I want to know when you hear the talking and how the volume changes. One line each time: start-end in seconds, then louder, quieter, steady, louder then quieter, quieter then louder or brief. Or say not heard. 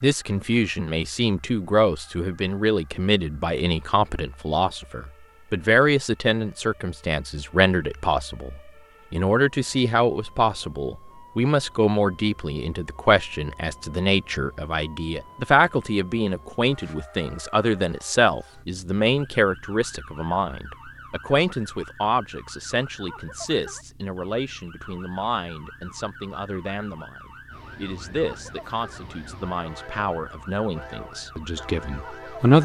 0.0-32.5 quieter.